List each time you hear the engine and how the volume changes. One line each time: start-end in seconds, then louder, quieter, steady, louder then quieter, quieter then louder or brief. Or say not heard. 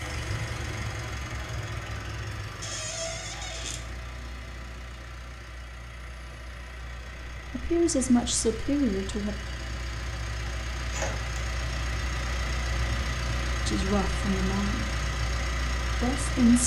0.0-16.6 quieter then louder.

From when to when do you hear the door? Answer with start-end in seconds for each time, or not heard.
2.6-3.8, 10.9-11.3.